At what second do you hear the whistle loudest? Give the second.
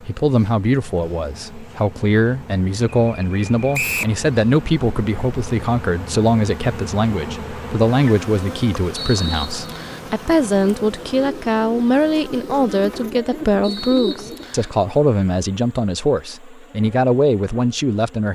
4 s.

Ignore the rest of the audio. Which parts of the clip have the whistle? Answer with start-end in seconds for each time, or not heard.
3.7-4.2, 8.9-10.0, 13.6-14.8.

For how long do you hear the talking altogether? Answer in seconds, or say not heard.
18 s.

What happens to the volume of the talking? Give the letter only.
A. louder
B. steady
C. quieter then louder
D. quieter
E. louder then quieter
B.